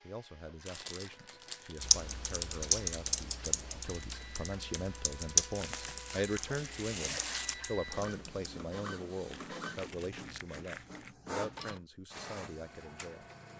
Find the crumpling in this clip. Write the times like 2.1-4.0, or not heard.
0.7-1.9, 5.5-7.5, 9.3-11.2.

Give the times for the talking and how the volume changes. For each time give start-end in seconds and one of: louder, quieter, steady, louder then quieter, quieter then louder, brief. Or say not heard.
0.0-13.3 louder then quieter.